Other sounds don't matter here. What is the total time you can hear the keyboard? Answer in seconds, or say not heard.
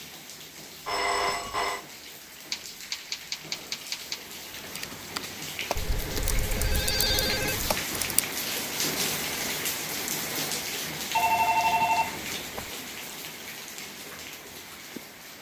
6 s.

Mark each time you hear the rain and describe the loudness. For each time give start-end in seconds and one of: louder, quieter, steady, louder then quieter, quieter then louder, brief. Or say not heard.
0.0-15.3 louder then quieter.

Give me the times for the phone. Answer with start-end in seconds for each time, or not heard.
0.8-1.9, 5.8-7.8, 11.2-12.7.